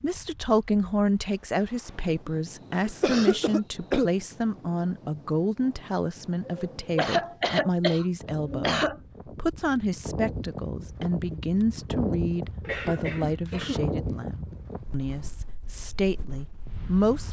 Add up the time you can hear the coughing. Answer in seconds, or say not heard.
6 s.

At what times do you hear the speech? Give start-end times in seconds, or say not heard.
0.0-17.2.